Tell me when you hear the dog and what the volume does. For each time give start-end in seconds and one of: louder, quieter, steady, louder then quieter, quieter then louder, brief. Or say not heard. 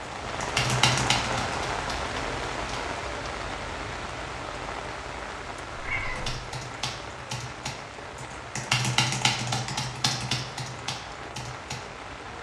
not heard.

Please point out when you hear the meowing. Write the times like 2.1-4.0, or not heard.
5.8-6.3.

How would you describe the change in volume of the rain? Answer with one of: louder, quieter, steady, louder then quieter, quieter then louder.
quieter.